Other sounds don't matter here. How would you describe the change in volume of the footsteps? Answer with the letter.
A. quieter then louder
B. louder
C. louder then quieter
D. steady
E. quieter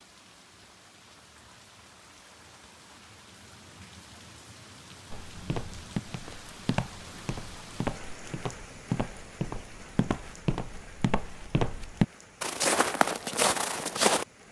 B.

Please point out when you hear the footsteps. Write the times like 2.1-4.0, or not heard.
5.1-14.2.